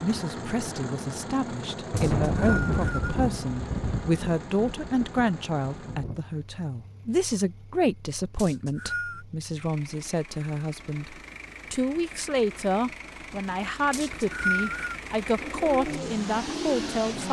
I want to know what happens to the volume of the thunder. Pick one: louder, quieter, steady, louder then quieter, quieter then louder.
quieter.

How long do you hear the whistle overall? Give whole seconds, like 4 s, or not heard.
3 s.